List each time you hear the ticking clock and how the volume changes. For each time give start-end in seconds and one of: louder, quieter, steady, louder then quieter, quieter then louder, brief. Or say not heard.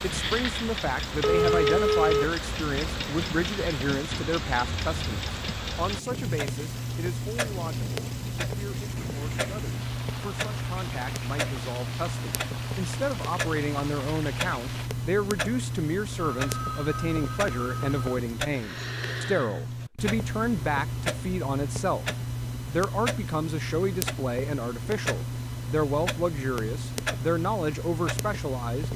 0.0-28.9 steady.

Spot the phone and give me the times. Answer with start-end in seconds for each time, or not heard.
1.2-2.4, 16.3-18.2.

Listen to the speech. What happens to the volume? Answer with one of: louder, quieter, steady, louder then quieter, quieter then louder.
quieter then louder.